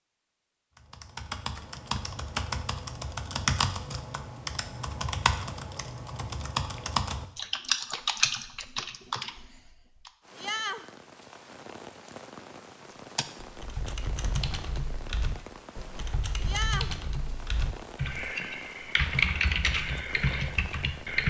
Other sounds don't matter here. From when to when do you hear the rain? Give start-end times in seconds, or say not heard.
10.2-21.2.